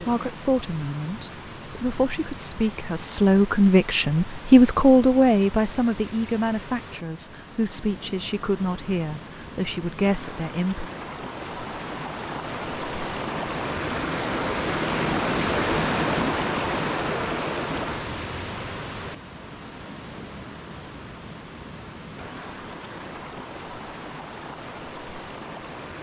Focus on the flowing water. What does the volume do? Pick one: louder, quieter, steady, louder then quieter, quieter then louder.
louder then quieter.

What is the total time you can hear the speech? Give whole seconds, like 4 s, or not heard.
11 s.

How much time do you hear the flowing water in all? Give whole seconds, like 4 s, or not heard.
26 s.